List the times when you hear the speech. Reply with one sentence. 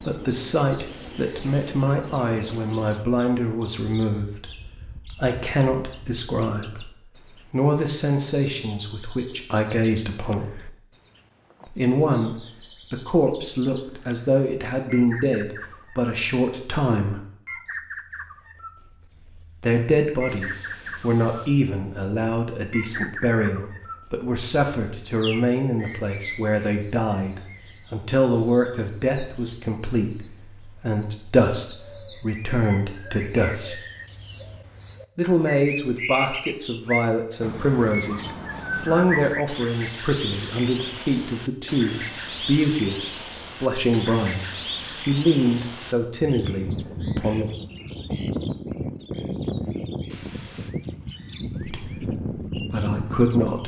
You can hear the speech from 0.0 to 6.9 s, from 7.5 to 10.7 s, from 11.7 to 17.2 s, from 19.6 to 33.8 s, from 35.1 to 47.5 s and from 51.5 to 53.6 s.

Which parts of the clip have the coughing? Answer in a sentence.
The coughing can't be heard in this clip.